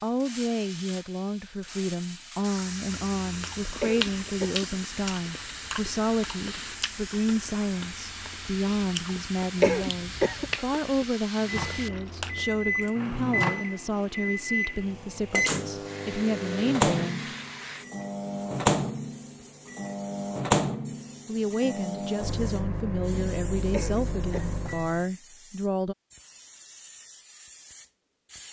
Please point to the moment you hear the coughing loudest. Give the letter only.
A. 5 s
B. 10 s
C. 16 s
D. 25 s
B.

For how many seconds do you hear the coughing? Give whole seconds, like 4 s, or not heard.
3 s.